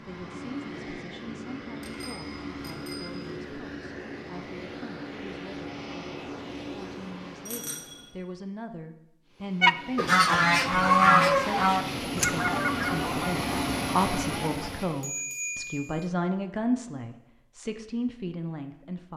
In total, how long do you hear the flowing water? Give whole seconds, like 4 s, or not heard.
not heard.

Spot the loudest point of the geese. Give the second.
11 s.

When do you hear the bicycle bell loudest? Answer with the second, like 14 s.
15 s.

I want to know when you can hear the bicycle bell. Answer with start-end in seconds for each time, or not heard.
1.8-3.5, 7.5-8.0, 15.0-16.1.